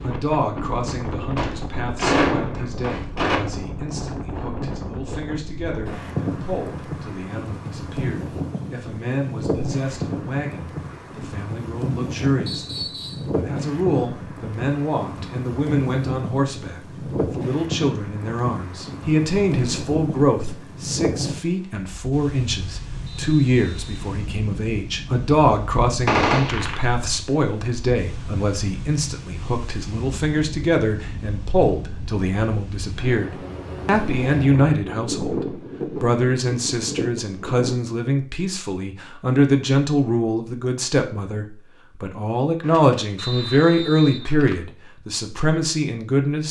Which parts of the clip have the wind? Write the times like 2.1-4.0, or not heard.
0.0-37.8.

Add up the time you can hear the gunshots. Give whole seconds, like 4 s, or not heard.
5 s.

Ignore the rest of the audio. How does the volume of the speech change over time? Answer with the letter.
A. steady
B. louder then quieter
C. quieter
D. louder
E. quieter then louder
D.